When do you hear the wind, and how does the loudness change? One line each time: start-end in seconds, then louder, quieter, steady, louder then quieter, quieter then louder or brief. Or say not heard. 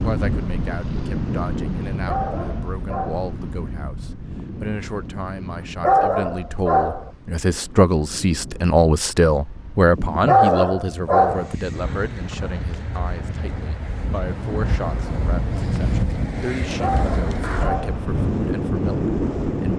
0.0-19.7 quieter then louder.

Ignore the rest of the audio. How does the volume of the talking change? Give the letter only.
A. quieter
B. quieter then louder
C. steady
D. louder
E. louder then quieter
E.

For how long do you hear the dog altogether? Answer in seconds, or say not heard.
5 s.